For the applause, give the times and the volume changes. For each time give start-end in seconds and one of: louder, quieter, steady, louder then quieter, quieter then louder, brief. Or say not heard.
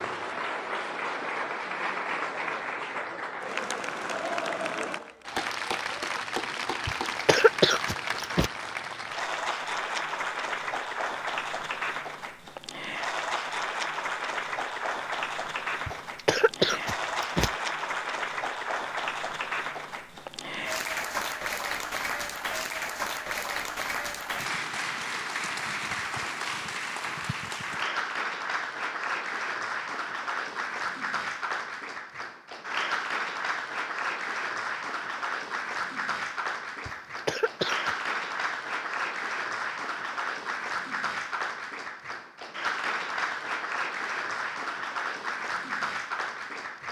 0.0-46.8 steady.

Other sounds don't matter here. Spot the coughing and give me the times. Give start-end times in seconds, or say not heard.
6.8-8.5, 15.8-17.5, 36.9-38.0.